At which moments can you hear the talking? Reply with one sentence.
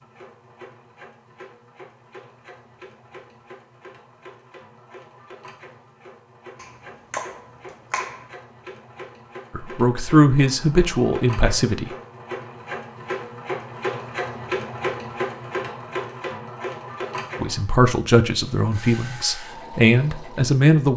You can hear the talking from 9.6 to 11.9 s and from 17.4 to 20.9 s.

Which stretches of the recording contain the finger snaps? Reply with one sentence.
The finger snaps can be heard from 6.5 to 8.3 s.